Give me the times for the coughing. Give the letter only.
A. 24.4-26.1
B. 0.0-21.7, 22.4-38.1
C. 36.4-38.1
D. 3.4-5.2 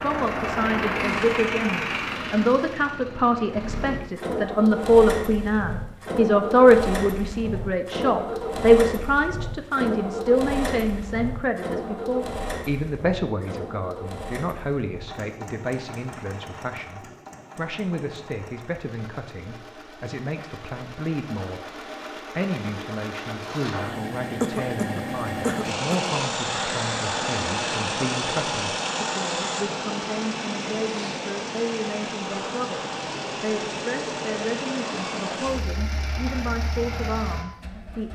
A.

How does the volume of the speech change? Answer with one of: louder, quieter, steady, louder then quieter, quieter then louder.
quieter.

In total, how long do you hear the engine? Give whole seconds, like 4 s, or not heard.
38 s.